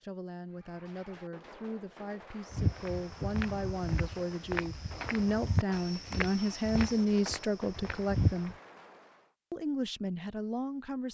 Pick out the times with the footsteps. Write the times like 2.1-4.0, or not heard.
2.5-8.6.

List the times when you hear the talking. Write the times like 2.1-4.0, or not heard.
0.0-8.6, 9.5-11.1.